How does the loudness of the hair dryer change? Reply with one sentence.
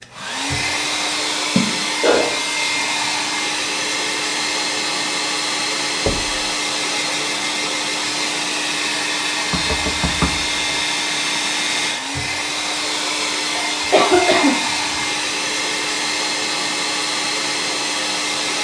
The loudness of the hair dryer stays about the same.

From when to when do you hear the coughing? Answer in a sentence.
The coughing can be heard from 1.6 to 2.8 s and from 13.6 to 14.6 s.